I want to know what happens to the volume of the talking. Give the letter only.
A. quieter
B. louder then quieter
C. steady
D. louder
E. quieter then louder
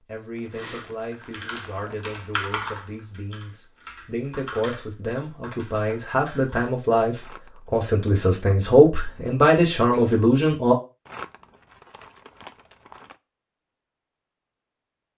D.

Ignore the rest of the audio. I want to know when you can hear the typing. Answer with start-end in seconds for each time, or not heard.
0.5-6.7.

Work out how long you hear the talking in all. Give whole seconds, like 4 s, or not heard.
11 s.